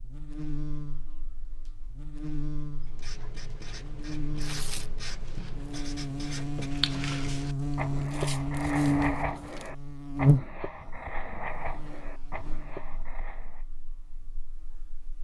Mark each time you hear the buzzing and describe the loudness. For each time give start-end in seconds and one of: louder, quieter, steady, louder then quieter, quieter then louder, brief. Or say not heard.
0.0-15.1 louder then quieter.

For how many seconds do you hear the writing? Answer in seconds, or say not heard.
11 s.